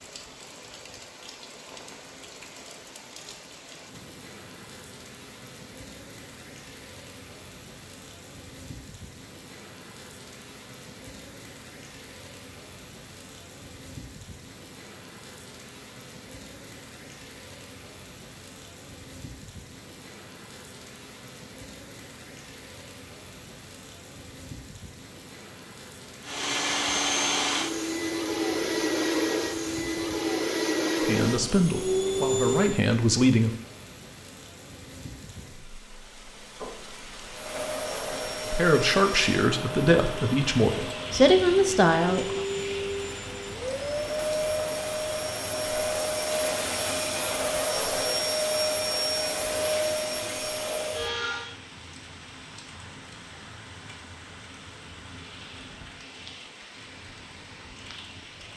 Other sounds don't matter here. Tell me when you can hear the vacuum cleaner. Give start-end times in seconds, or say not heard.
26.2-32.8, 37.3-51.5.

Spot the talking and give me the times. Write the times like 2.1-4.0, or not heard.
31.1-33.5, 38.5-42.4.